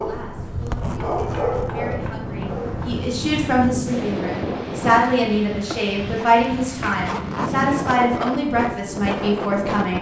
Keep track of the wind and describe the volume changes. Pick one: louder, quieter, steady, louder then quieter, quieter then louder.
louder.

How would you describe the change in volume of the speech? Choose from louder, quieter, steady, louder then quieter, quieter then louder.
louder.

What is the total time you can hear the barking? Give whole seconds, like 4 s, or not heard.
3 s.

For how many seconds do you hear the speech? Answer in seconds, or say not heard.
10 s.